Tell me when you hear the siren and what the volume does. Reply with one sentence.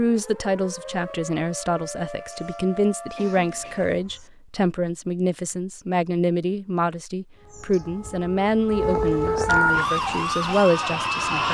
The siren can be heard from 0.0 to 4.2 s, at a steady volume; and from 7.3 to 11.4 s, getting louder then quieter.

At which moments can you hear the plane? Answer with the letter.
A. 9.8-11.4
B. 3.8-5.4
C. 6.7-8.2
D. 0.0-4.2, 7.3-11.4
A.